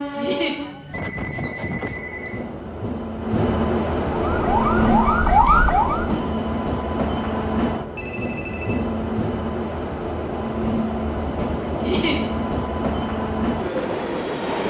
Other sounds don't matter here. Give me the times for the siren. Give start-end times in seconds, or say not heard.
4.2-6.2.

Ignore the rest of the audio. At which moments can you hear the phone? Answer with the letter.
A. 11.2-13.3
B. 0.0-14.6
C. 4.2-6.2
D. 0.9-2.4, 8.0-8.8
D.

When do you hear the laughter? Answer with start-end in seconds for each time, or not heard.
0.1-0.6, 11.8-12.2.